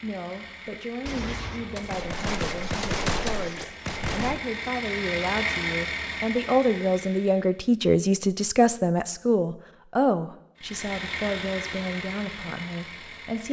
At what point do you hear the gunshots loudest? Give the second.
3 s.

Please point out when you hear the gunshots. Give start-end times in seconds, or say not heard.
1.1-4.4.